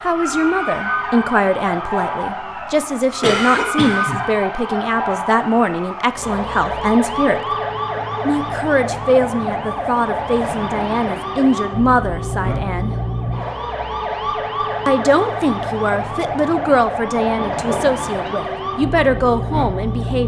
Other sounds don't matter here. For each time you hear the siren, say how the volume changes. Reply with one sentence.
You can hear the siren from 0.0 to 20.2 s, at a steady volume.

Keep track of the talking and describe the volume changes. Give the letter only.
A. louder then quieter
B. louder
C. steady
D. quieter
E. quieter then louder
C.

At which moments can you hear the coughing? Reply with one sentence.
You can hear the coughing from 3.2 to 4.3 s and from 17.4 to 18.3 s.